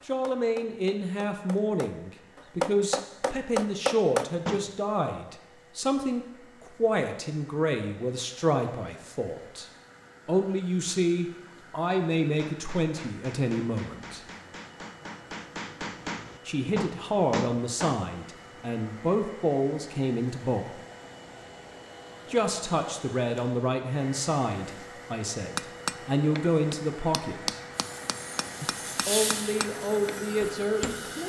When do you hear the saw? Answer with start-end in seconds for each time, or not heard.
27.7-31.2.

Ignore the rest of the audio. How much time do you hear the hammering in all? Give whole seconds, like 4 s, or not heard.
16 s.